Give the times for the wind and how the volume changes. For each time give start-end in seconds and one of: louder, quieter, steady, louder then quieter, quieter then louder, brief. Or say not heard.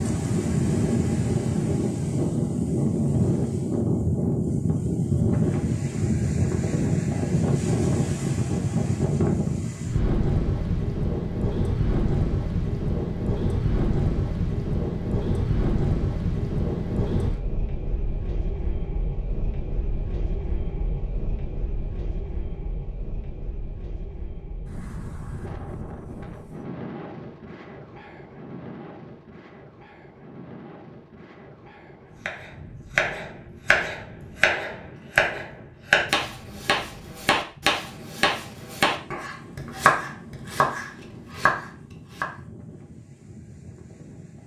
0.0-44.4 quieter.